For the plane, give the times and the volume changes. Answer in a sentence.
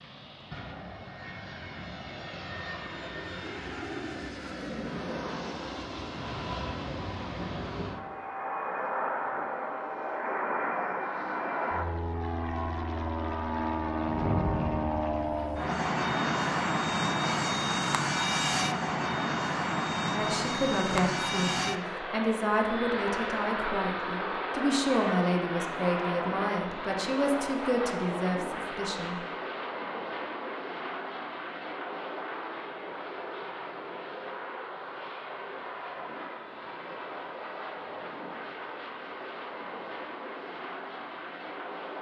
The plane can be heard from 0.0 to 41.9 s, getting louder then quieter.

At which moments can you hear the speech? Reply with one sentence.
You can hear the speech from 20.1 to 29.1 s.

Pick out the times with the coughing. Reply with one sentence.
You can't hear the coughing here.